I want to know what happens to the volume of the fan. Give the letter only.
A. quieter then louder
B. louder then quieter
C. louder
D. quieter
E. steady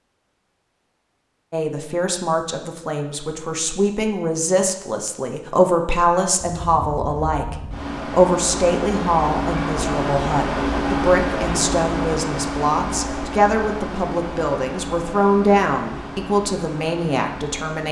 B.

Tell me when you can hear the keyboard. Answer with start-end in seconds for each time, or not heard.
not heard.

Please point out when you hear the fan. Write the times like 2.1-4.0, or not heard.
6.4-17.8.